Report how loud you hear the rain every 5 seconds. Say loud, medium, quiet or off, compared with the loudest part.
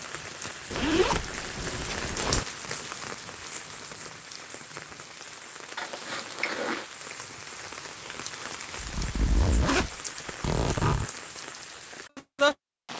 medium, medium, loud.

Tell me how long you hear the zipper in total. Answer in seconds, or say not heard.
5 s.